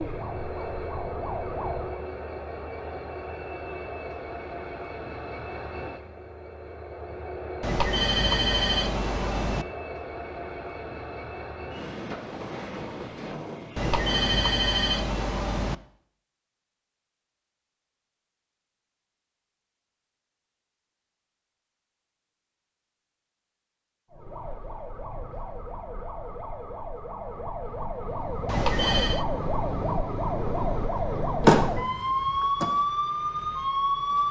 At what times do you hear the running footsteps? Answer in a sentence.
The running footsteps can't be heard in this clip.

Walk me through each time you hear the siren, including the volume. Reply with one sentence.
The siren can be heard briefly from 0.0 to 2.0 s; and from 24.1 to 34.2 s, getting louder.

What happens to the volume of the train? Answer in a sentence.
The loudness of the train stays about the same.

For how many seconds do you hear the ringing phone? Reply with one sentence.
You can hear the ringing phone for 5 seconds altogether.